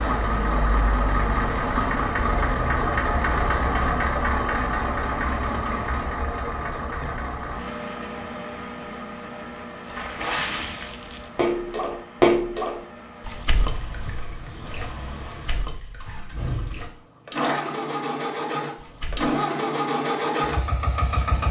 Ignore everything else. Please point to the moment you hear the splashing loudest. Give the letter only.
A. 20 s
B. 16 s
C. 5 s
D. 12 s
D.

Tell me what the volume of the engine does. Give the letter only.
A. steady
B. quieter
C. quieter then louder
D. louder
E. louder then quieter
C.